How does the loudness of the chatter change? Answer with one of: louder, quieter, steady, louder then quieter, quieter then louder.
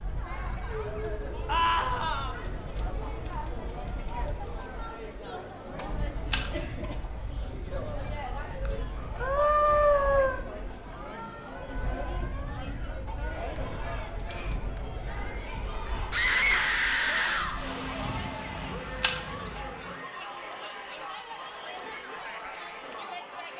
steady.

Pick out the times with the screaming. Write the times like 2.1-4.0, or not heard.
1.4-2.4, 9.2-10.4, 16.1-17.6.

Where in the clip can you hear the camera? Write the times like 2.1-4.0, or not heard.
6.1-6.7, 18.6-19.9.